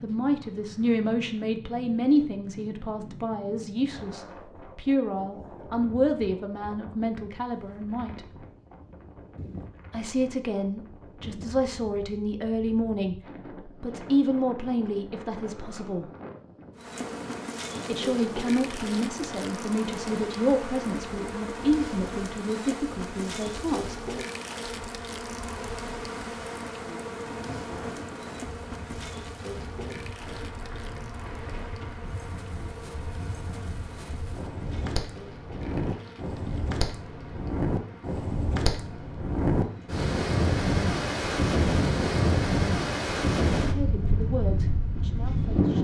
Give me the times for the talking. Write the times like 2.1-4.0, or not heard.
0.0-8.2, 9.9-16.1, 17.9-23.9, 43.6-45.8.